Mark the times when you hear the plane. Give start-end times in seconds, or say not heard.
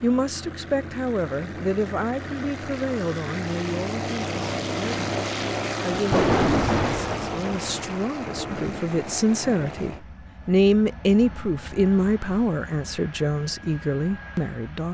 0.0-14.8.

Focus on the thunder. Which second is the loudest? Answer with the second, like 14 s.
6 s.